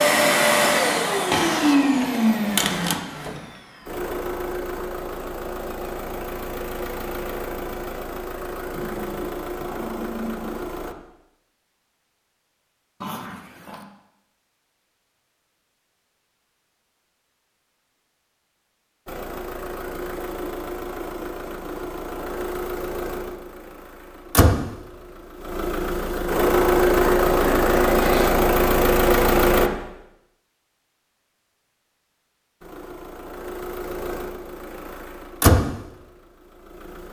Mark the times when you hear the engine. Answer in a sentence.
The engine can be heard from 0.0 to 10.9 s, from 19.1 to 29.7 s and from 32.6 to 37.0 s.